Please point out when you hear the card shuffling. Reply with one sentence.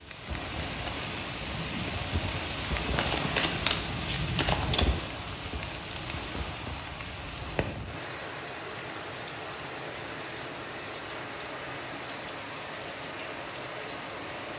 You can hear the card shuffling from 3.0 to 5.0 s.